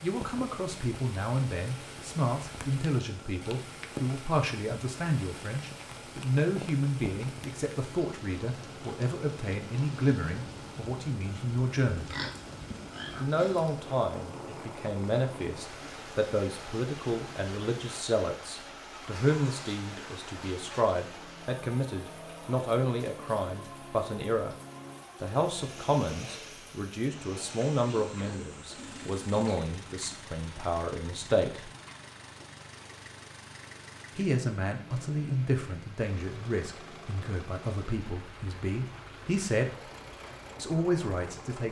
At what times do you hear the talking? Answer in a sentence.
You can hear the talking from 0.0 to 12.2 s, from 13.2 to 24.6 s, from 25.2 to 31.7 s, from 34.1 to 39.7 s and from 40.5 to 41.6 s.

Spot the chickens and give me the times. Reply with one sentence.
You can't hear the chickens here.